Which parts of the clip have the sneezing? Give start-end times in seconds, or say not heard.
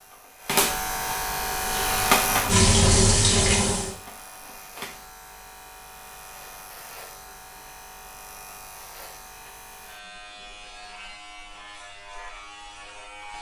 not heard.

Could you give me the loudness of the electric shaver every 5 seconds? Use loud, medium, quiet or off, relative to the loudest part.
loud, quiet, quiet.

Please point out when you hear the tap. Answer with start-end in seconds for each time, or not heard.
1.4-4.0.